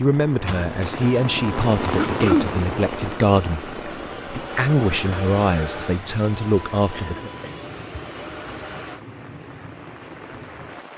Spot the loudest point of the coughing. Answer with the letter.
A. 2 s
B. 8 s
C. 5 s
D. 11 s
A.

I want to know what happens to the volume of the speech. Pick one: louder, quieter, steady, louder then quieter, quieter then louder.
steady.